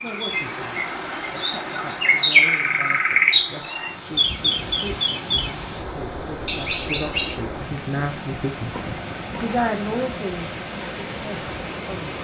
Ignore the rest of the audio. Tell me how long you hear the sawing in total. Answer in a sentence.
You can't hear the sawing here.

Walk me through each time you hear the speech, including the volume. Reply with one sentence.
You can hear the speech from 0.0 to 12.1 s, getting louder.